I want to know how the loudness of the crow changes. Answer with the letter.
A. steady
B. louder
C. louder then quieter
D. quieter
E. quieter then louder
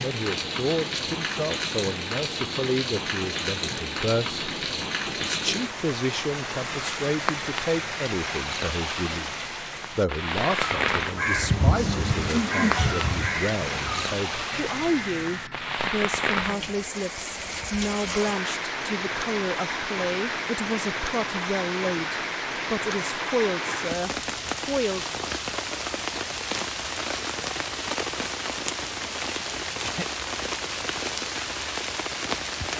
D.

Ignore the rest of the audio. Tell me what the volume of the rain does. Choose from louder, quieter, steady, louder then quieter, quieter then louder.
steady.